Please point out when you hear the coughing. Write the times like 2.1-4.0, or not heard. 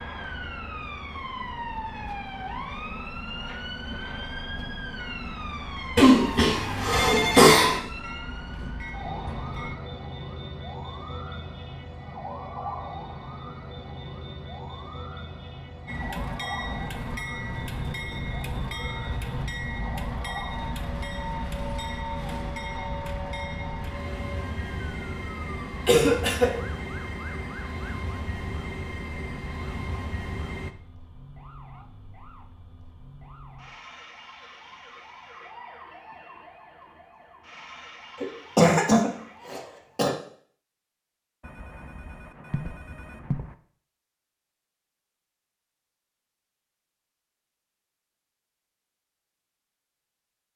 6.0-7.8, 25.9-26.5, 38.2-40.1.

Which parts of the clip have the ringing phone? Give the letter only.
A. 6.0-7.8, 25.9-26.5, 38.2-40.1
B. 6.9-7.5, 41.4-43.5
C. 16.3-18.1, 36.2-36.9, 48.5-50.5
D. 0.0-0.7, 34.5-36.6
B.